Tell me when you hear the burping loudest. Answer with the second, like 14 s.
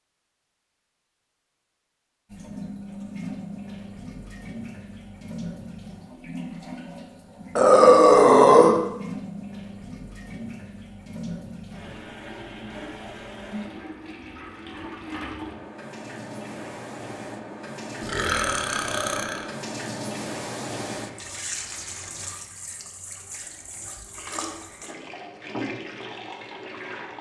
8 s.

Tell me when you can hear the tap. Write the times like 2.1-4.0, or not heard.
2.3-27.1.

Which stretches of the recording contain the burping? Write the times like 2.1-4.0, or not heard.
7.5-8.8, 18.0-19.4.